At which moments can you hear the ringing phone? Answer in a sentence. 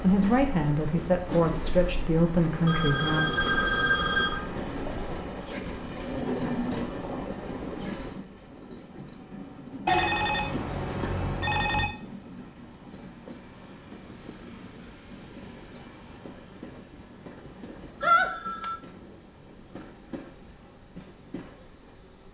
The ringing phone can be heard from 2.6 to 4.5 s, from 9.8 to 11.9 s and from 18.0 to 18.8 s.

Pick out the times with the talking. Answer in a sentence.
The talking can be heard from 0.0 to 3.4 s.